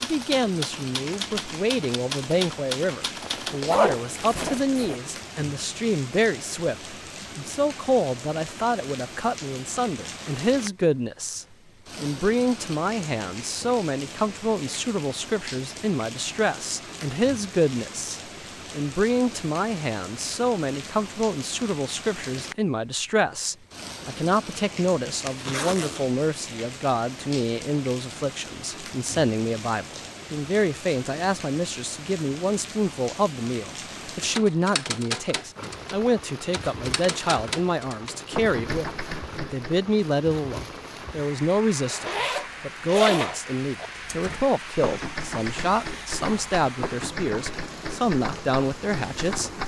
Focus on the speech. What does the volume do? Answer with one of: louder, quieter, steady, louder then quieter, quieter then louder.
steady.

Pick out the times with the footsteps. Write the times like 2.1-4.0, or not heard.
not heard.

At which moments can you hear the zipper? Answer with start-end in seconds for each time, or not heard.
3.2-5.0, 25.2-26.1, 41.9-43.9.